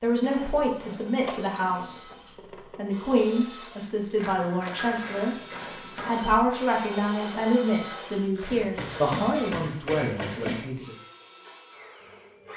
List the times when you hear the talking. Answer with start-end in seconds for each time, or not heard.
0.0-2.0, 2.8-10.9.